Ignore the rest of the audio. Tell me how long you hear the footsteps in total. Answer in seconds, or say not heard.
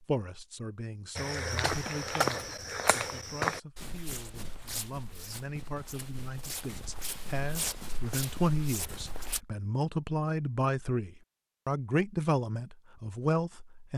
8 s.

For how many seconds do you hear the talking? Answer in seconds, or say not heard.
14 s.